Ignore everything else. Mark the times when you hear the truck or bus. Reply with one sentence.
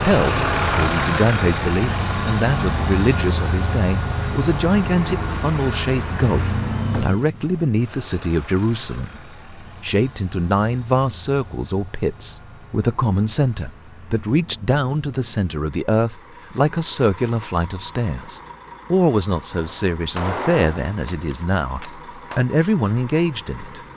The truck or bus can be heard from 0.0 to 23.9 s.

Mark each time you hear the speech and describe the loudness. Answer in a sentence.
You can hear the speech from 0.0 to 23.8 s, at a steady volume.